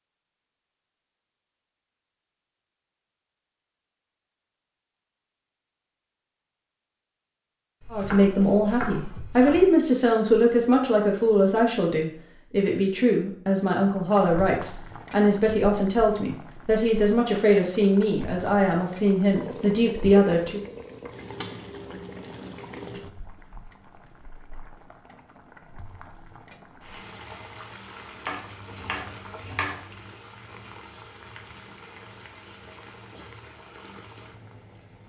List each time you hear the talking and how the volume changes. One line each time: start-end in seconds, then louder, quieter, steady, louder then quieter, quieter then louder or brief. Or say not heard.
7.9-20.6 steady.